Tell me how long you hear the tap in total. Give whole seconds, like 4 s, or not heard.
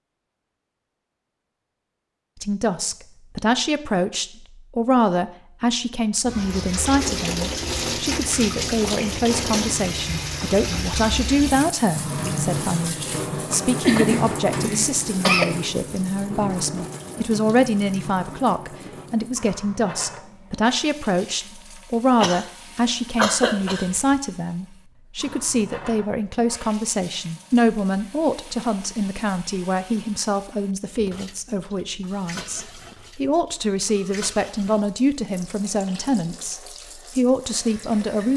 32 s.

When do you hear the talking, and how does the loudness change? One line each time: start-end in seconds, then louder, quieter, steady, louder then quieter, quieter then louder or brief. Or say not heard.
2.4-38.3 steady.